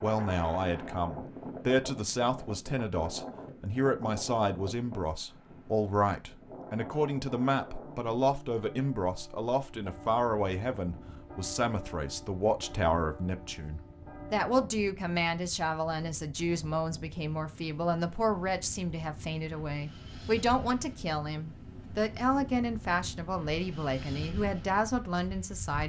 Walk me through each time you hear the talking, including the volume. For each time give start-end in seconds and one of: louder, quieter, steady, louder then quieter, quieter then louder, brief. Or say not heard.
0.0-25.8 steady.